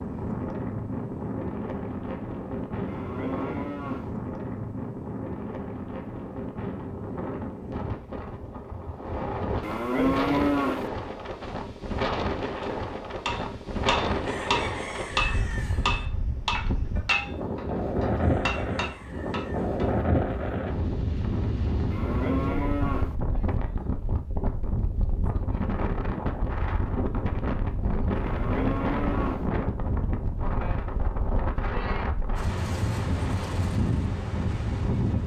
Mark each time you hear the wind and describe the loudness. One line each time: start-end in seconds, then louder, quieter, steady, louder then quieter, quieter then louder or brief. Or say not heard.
0.0-35.2 steady.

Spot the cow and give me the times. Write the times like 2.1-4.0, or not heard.
2.9-4.2, 9.6-10.9, 21.9-23.1, 28.2-29.5.